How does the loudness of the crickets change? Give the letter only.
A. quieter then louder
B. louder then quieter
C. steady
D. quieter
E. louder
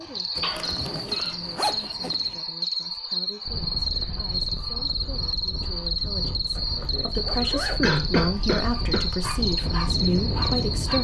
C.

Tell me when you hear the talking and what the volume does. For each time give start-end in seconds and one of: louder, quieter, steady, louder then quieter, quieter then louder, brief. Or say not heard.
0.0-10.9 louder.